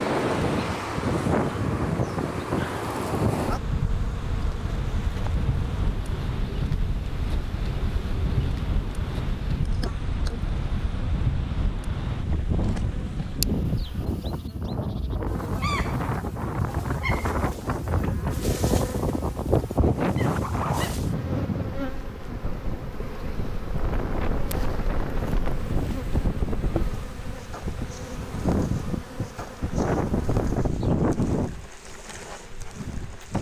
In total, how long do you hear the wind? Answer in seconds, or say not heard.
33 s.